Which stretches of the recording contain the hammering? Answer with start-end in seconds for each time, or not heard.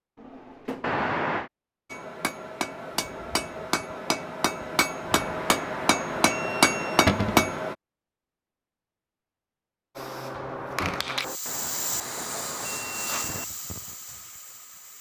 1.9-7.8.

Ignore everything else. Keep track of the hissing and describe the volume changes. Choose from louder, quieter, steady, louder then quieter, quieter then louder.
quieter.